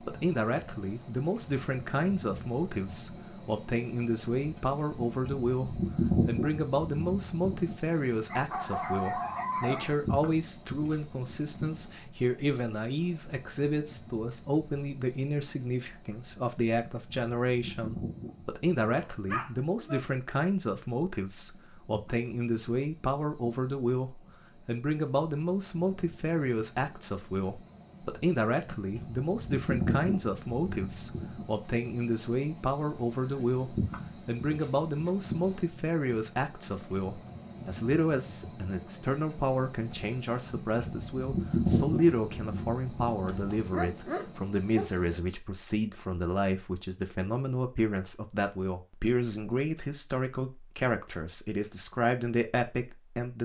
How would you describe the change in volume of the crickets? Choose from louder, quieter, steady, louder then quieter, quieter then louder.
quieter then louder.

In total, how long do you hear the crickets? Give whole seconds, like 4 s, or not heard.
45 s.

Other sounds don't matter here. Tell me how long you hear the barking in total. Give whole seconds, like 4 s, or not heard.
4 s.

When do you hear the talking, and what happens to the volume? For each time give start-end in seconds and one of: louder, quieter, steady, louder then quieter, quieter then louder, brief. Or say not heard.
0.0-53.4 steady.